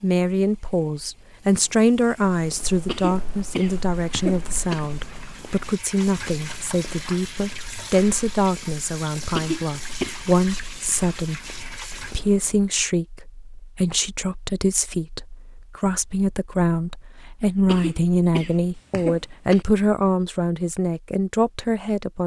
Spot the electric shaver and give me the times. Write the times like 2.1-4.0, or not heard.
not heard.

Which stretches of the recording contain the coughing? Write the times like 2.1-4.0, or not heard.
2.9-4.8, 9.3-10.2, 17.6-19.6.